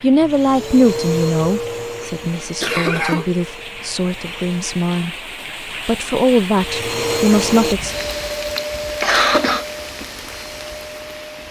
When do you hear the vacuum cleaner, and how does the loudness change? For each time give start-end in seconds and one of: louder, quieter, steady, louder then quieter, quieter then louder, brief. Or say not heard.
0.0-4.8 quieter
6.5-11.4 quieter.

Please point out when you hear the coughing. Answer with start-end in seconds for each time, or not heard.
2.6-3.2, 8.4-9.7.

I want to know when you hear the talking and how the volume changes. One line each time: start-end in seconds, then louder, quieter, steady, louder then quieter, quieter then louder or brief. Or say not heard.
0.0-5.2 quieter
5.8-8.0 brief.